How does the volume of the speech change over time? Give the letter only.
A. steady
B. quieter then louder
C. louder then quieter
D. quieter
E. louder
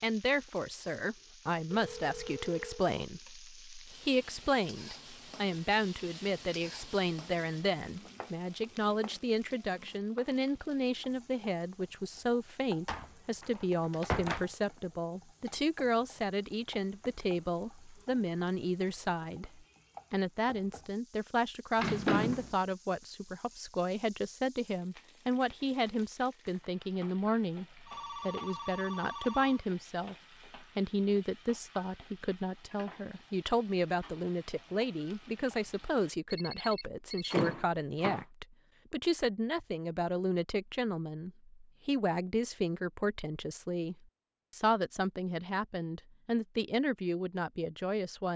A.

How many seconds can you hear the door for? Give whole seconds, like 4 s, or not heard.
3 s.